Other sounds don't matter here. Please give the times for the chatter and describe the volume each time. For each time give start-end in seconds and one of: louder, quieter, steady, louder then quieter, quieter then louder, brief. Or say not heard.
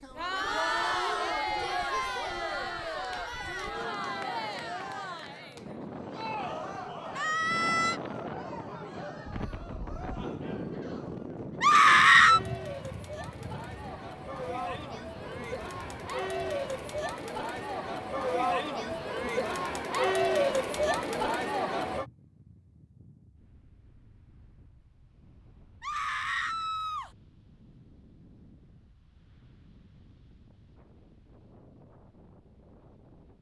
0.0-22.1 quieter then louder.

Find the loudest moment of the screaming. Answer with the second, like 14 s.
12 s.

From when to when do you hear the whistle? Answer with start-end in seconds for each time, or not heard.
not heard.